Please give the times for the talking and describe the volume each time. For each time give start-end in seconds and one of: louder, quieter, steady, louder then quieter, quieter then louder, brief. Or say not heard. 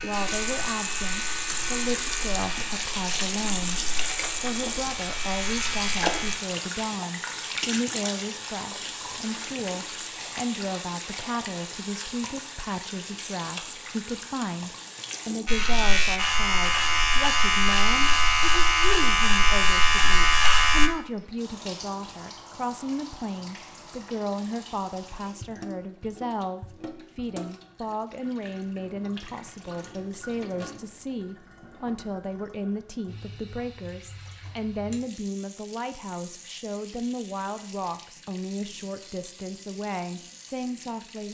0.0-41.2 steady.